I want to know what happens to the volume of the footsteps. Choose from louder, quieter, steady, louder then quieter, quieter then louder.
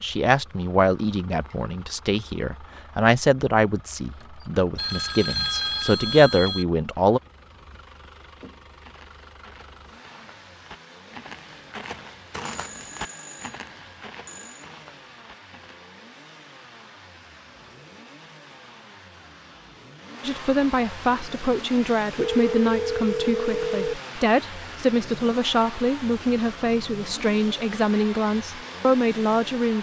louder then quieter.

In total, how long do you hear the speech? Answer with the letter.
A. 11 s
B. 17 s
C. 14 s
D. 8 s
B.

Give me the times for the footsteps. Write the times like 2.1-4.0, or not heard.
8.8-15.8.